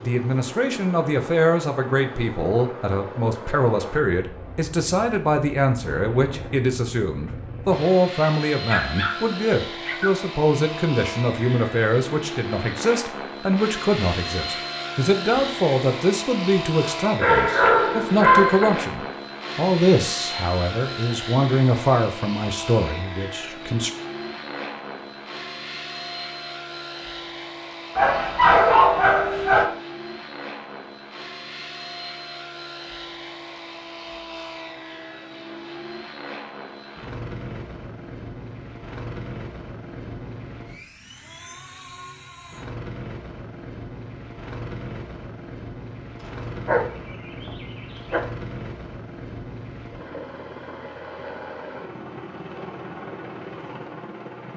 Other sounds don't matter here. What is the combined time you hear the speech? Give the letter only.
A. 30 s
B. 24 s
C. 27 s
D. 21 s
B.